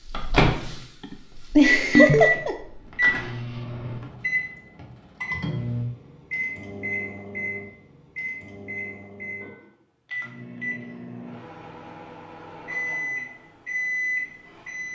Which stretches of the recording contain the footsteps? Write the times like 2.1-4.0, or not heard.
not heard.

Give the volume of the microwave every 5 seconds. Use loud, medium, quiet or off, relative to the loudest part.
loud, medium, medium.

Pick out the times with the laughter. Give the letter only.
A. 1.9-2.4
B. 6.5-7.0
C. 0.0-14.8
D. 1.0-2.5
D.